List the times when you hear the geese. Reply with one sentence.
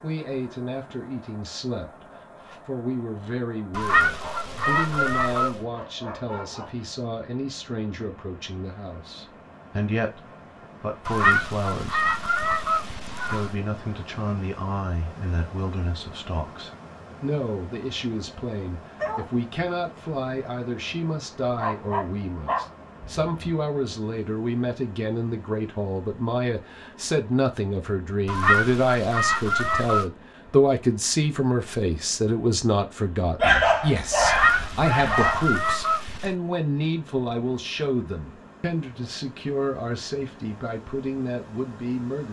You can hear the geese from 3.7 to 5.5 s, from 11.1 to 13.6 s, from 28.2 to 30.1 s and from 34.2 to 36.4 s.